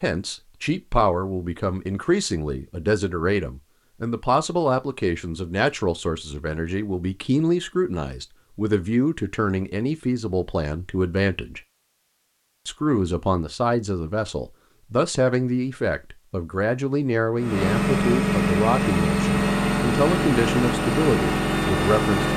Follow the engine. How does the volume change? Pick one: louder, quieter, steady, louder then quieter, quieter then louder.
steady.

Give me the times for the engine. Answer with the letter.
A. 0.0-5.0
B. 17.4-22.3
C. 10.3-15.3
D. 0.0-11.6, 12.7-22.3
B.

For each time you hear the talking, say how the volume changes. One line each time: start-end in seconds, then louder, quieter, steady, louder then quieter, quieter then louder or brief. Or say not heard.
0.0-11.6 steady
12.7-22.3 steady.